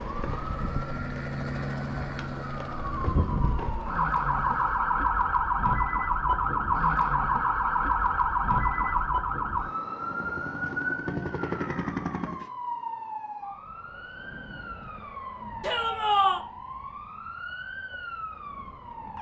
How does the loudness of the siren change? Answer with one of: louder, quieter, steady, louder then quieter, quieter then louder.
louder then quieter.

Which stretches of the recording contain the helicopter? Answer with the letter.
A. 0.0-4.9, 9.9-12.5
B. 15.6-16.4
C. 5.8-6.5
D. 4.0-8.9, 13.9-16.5
A.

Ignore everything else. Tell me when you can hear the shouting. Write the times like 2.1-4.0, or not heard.
15.6-16.4.